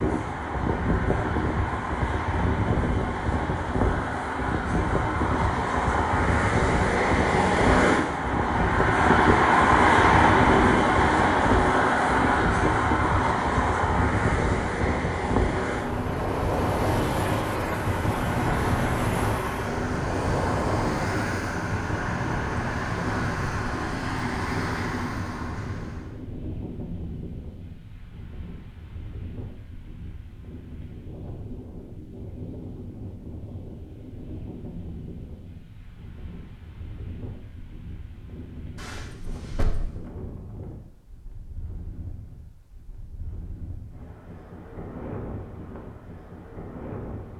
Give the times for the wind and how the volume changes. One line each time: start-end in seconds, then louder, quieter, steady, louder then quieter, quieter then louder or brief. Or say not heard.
0.0-47.3 quieter.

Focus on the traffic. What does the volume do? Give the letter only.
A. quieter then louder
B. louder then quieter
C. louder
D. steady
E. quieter
B.